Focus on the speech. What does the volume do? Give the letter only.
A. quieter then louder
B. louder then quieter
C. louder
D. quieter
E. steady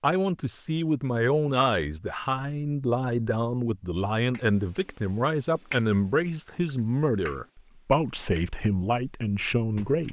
E.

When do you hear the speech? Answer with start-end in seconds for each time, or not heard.
0.0-10.0.